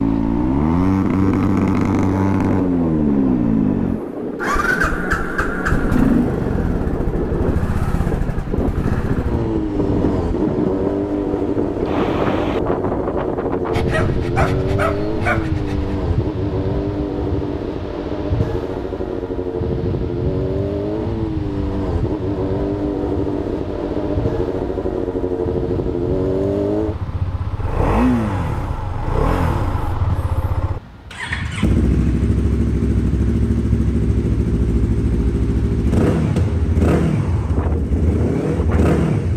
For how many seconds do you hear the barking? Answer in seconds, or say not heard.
2 s.